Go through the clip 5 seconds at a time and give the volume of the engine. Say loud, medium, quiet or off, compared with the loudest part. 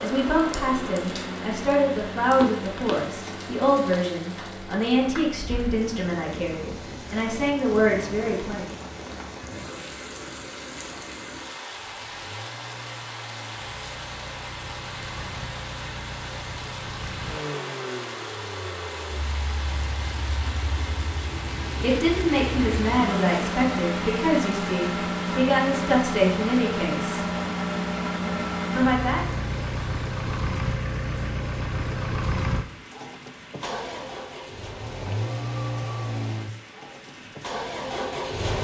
medium, quiet, quiet, medium, loud, loud, loud, loud.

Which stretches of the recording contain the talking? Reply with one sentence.
The talking can be heard from 0.0 to 8.7 s, from 21.8 to 27.2 s and from 28.8 to 29.4 s.